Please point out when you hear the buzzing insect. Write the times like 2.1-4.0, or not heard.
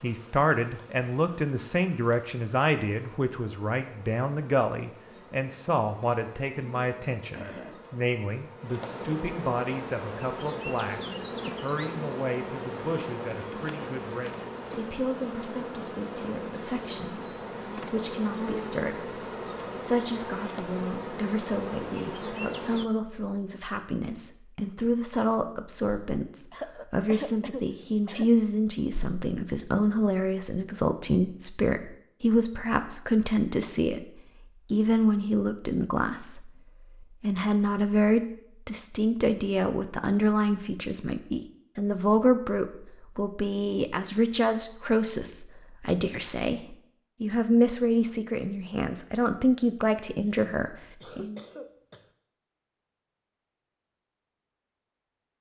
0.0-22.9.